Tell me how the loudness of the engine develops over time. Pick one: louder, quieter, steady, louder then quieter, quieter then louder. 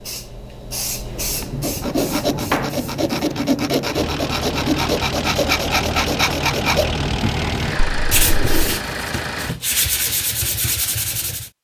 steady.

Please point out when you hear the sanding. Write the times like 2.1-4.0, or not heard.
1.1-11.5.